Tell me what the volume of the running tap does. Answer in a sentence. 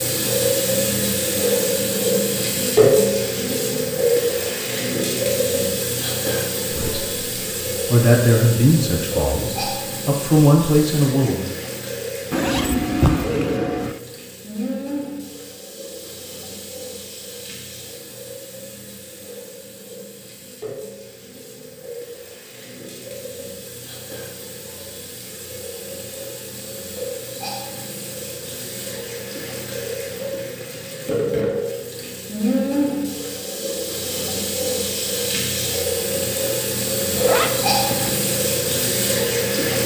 The loudness of the running tap goes down, then up.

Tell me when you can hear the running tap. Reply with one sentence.
The running tap can be heard from 0.0 to 39.8 s.